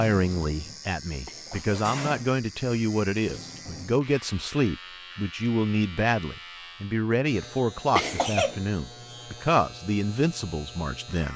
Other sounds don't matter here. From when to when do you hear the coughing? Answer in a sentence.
The coughing can be heard from 1.2 to 1.8 s and from 8.0 to 8.6 s.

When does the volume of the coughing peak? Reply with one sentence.
The loudest moment of the coughing is at 8 seconds.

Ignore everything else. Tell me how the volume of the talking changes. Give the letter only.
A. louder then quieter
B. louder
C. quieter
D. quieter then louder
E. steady
E.